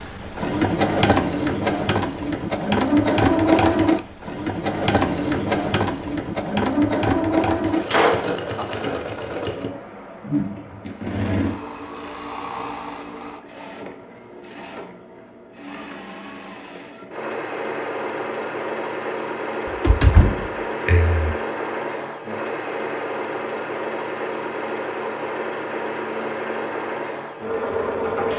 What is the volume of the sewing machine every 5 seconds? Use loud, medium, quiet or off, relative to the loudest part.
loud, loud, medium, medium, medium, medium.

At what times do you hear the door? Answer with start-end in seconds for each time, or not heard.
7.7-8.7, 19.6-21.4.